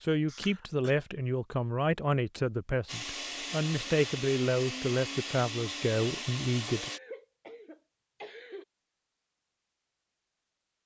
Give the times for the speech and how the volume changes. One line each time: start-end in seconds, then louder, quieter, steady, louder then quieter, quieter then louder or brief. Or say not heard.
0.0-6.9 steady.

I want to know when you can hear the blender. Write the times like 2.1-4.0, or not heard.
2.9-7.0.